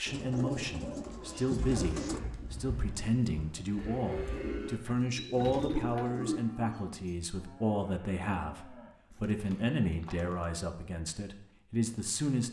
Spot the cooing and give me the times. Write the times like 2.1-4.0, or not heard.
0.1-2.2, 4.3-6.5, 9.1-10.6.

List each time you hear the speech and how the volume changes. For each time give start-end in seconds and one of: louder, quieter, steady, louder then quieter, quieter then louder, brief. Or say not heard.
0.0-12.4 steady.